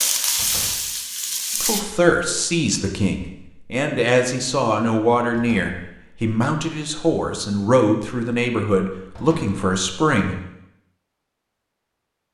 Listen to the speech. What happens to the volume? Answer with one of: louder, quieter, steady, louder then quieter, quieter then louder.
steady.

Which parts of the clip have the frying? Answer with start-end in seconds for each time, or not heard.
0.0-1.9.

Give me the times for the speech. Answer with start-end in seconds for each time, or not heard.
1.6-10.3.